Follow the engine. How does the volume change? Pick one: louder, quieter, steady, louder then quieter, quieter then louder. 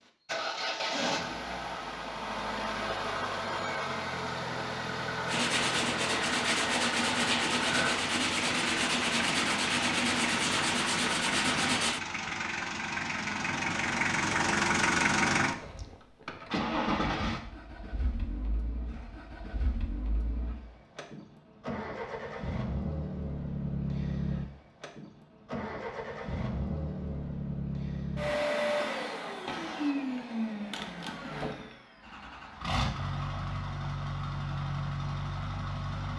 steady.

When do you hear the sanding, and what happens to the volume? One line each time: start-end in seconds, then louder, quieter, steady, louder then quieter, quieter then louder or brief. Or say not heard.
5.2-12.0 steady.